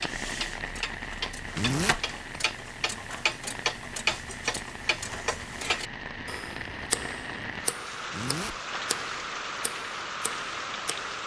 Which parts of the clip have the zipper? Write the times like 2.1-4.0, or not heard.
1.6-2.0, 8.1-8.6.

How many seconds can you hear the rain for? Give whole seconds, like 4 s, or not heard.
11 s.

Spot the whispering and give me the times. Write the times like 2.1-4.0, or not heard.
not heard.